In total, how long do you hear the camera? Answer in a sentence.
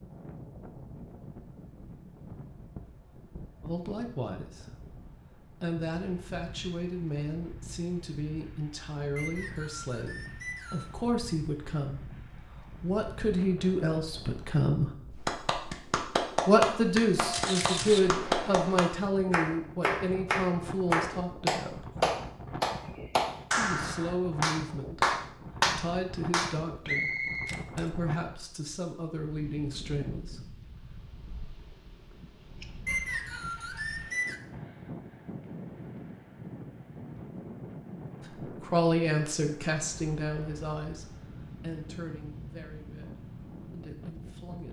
You can hear the camera for 2 seconds altogether.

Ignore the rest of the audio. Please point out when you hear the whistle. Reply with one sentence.
The whistle can be heard from 9.2 to 10.9 s, from 26.9 to 27.6 s and from 32.9 to 34.4 s.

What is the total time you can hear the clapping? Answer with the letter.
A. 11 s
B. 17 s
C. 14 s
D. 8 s
A.